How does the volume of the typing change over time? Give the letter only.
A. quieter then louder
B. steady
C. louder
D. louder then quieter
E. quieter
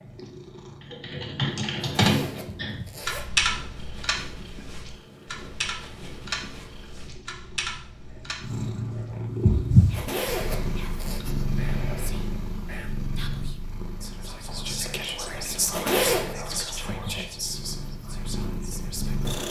E.